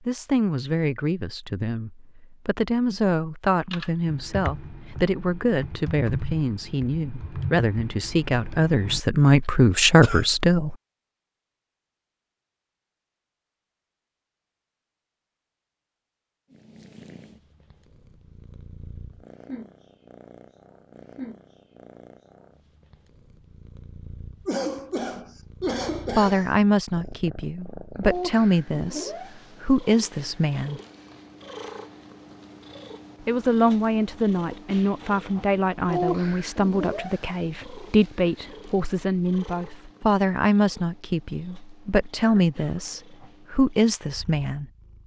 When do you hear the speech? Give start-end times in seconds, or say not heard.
0.1-10.8, 26.1-30.8, 33.2-44.6.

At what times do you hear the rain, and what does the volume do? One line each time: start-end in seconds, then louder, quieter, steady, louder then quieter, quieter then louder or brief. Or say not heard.
not heard.